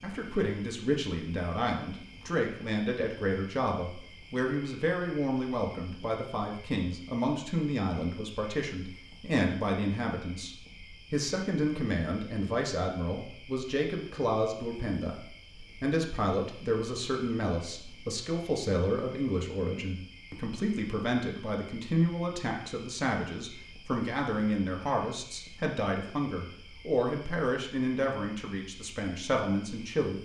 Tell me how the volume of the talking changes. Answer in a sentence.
The loudness of the talking stays about the same.